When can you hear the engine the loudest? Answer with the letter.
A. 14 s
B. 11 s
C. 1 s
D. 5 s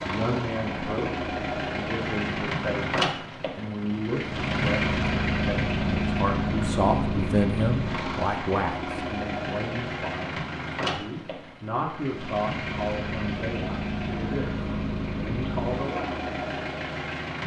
D.